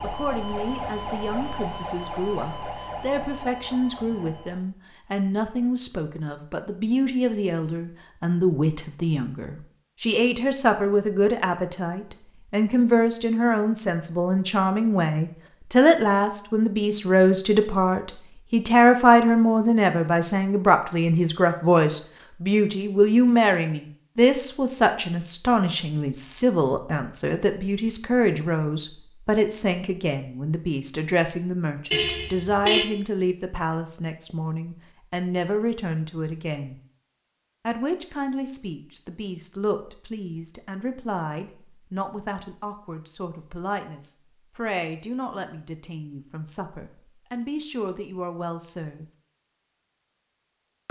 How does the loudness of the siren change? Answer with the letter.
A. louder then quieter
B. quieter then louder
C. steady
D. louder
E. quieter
E.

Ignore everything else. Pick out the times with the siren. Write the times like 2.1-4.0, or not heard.
0.0-4.7.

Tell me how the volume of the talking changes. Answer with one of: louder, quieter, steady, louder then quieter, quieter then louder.
louder then quieter.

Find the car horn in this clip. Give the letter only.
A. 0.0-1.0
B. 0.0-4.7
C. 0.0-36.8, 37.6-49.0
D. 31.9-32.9
D.